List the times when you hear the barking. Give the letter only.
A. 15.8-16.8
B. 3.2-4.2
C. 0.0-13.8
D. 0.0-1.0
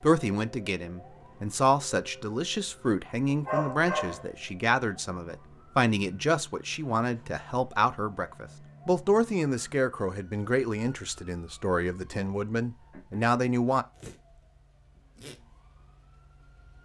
B.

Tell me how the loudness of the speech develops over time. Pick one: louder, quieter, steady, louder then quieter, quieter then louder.
steady.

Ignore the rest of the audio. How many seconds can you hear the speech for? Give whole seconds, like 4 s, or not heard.
14 s.